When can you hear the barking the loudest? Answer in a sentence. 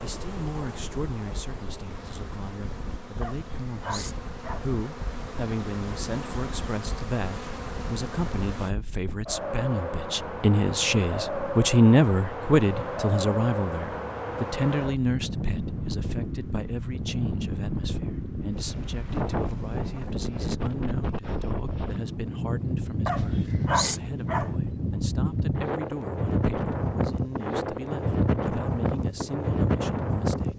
The loudest moment of the barking is at 24 seconds.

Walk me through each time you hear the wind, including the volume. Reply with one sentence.
The wind can be heard from 0.1 to 30.5 s, getting louder.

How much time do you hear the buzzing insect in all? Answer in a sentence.
The buzzing insect can be heard for 9 seconds in total.